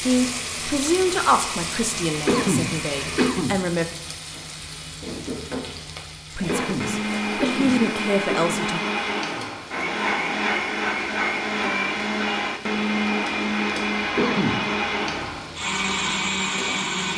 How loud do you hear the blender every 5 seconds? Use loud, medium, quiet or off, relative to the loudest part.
medium, loud, loud, loud.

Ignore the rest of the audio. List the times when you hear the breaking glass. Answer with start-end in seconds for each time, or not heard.
not heard.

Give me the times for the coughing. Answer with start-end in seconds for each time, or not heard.
2.2-3.6, 6.5-8.6, 14.2-14.7.